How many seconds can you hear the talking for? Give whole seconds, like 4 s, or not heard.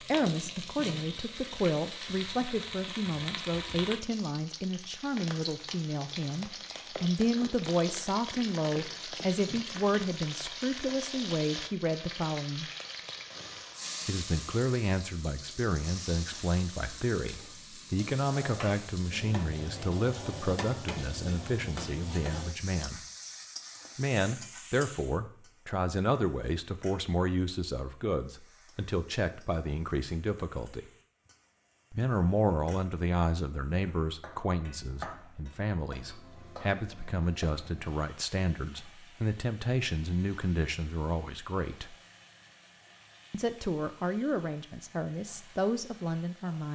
42 s.